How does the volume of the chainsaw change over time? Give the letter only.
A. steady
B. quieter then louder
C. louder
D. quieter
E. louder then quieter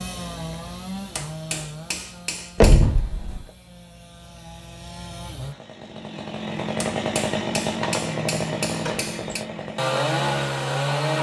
B.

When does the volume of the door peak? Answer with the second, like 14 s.
3 s.